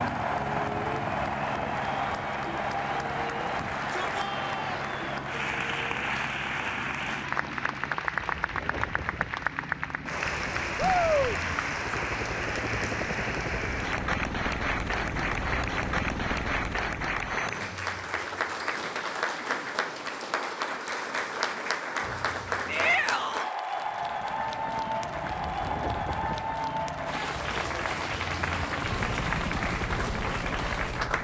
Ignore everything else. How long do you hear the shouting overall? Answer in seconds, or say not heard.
3 s.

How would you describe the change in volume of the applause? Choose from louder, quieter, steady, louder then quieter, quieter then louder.
steady.